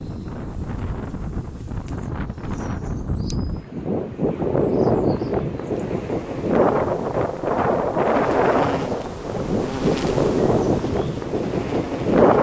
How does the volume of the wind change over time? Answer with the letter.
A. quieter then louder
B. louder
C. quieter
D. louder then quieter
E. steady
B.